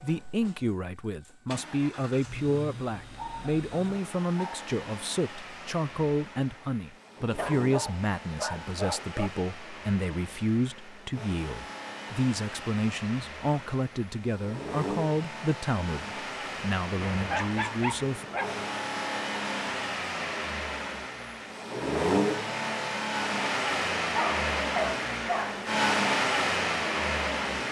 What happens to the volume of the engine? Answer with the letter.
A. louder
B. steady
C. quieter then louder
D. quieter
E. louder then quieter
A.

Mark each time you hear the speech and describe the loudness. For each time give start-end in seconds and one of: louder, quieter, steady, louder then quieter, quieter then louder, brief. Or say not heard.
0.0-18.2 steady.